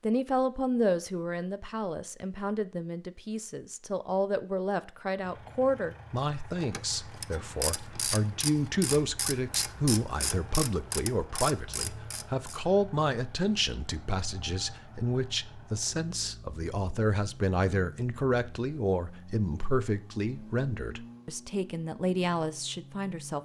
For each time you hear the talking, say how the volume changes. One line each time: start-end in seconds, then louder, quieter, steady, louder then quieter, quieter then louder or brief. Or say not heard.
0.0-23.4 steady.